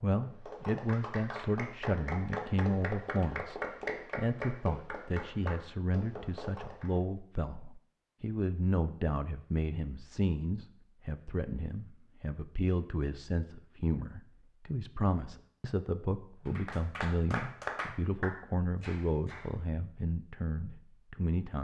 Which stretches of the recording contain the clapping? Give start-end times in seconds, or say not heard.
0.2-7.0, 16.4-19.5.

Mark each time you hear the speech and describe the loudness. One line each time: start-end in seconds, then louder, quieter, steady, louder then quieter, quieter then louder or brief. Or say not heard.
0.0-21.6 steady.